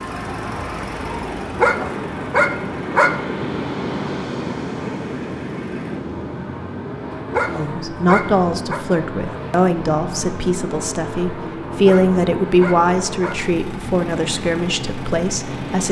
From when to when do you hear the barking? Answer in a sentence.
The barking can be heard from 1.6 to 3.1 s, from 7.2 to 8.8 s and from 11.7 to 13.4 s.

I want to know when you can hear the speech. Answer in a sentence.
You can hear the speech from 7.5 to 15.8 s.